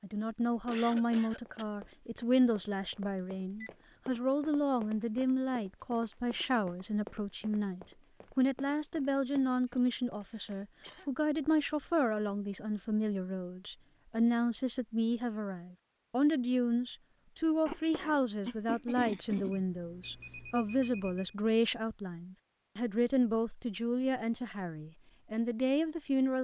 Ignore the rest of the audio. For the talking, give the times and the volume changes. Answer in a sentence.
You can hear the talking from 0.0 to 26.3 s, at a steady volume.